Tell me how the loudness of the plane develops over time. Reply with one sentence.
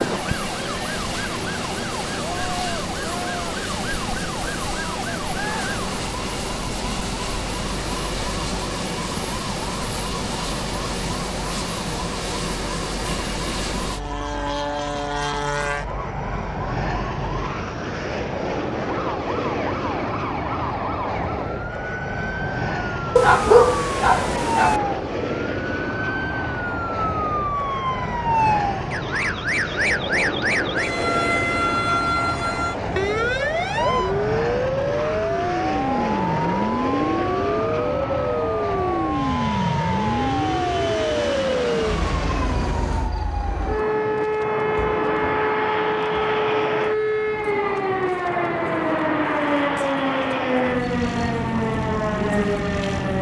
The loudness of the plane stays about the same.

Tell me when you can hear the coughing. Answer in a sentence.
You can't hear the coughing here.